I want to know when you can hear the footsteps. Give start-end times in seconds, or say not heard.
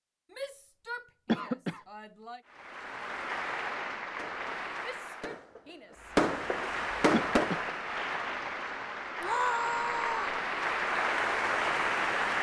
not heard.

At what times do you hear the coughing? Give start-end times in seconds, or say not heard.
1.2-1.8, 7.1-7.7.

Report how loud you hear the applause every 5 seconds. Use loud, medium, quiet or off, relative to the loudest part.
medium, medium, loud.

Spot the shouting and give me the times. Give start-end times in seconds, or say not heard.
0.3-2.4, 4.8-6.2, 9.2-10.4.